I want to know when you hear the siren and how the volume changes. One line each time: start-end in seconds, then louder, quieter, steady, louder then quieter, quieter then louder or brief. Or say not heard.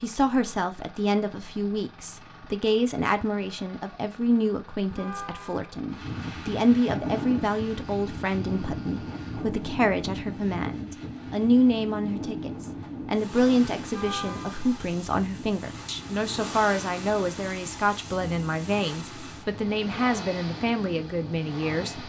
not heard.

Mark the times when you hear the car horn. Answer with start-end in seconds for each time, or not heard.
4.9-5.7, 13.9-14.7.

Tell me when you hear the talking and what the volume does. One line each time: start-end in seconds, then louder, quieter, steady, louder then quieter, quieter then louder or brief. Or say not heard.
0.0-22.0 steady.